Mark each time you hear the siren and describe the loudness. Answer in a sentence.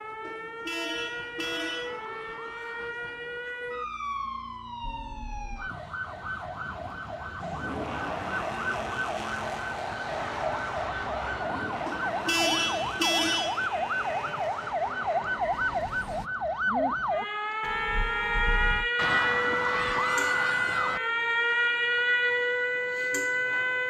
The siren can be heard from 0.0 to 23.8 s, getting louder.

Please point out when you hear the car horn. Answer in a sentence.
You can hear the car horn from 0.2 to 2.0 s, from 11.8 to 13.7 s and from 17.6 to 18.9 s.